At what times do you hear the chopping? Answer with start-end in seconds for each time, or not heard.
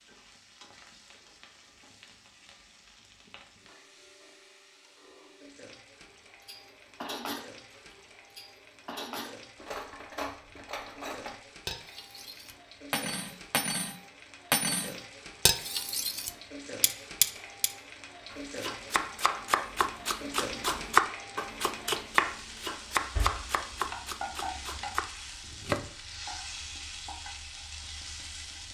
18.3-25.9.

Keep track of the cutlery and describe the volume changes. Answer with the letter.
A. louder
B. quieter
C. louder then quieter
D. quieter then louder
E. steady
A.